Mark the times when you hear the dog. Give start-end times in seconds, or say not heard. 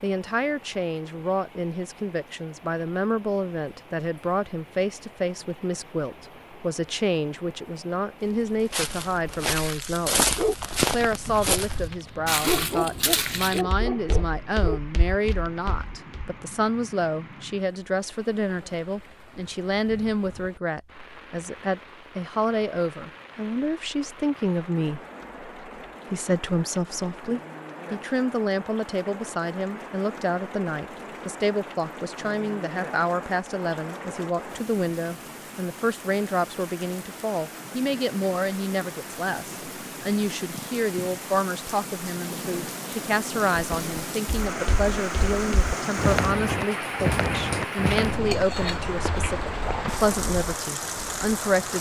10.3-15.8.